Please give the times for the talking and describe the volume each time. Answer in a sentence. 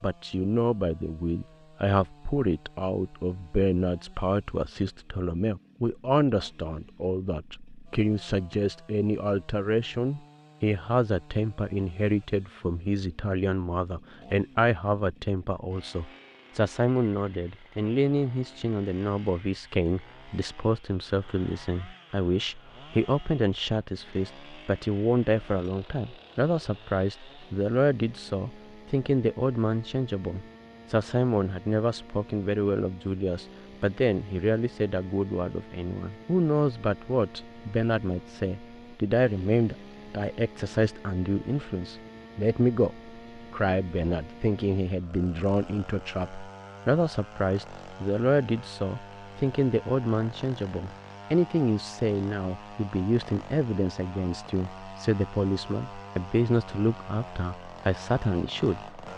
The talking can be heard from 0.0 to 58.9 s, at a steady volume.